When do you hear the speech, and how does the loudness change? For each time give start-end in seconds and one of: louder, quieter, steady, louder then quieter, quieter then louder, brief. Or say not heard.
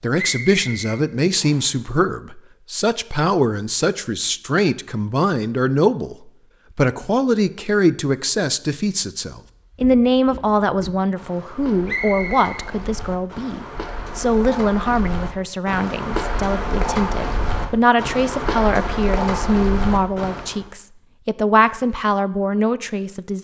0.0-23.3 steady.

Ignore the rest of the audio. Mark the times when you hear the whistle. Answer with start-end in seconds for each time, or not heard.
0.1-1.8, 11.8-12.7.